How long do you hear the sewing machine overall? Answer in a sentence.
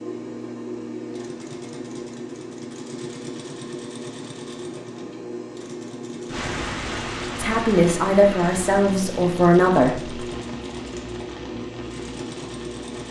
The sewing machine can be heard for 13 seconds in total.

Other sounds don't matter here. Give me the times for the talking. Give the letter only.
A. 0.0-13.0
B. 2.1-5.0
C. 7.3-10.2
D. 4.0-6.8
C.